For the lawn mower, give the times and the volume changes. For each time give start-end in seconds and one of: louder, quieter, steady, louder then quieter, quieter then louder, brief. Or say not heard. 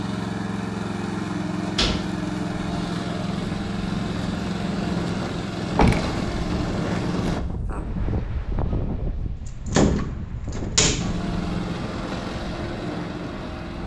0.0-7.4 steady
10.9-13.8 brief.